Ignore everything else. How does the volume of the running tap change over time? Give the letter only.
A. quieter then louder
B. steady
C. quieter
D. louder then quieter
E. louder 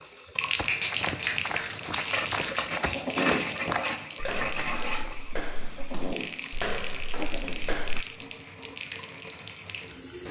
C.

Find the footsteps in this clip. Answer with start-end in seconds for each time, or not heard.
0.6-8.1.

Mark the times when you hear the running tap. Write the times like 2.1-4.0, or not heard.
0.0-10.2.